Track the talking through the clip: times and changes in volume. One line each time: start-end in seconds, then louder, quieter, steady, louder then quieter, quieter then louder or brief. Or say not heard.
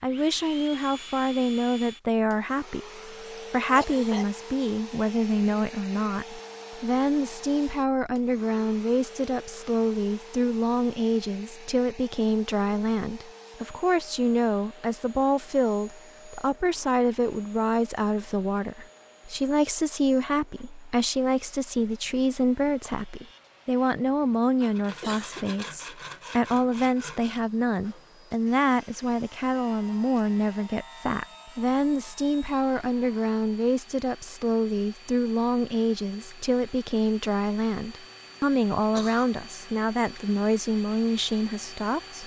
0.0-42.2 steady.